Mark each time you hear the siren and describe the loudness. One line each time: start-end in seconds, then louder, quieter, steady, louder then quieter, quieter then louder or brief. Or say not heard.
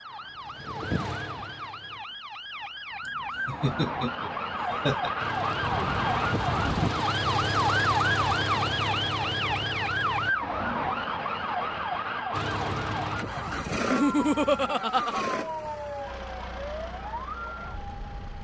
0.0-18.3 louder then quieter.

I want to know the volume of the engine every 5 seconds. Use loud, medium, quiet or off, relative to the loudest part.
medium, loud, loud, medium.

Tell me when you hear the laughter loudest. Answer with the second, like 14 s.
14 s.